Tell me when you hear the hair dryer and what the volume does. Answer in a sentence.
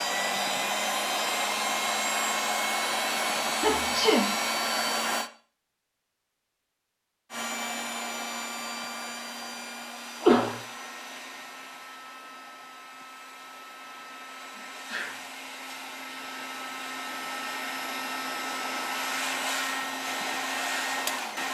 The hair dryer can be heard from 0.0 to 5.3 s, at a steady volume; and from 7.3 to 21.5 s, getting quieter then louder.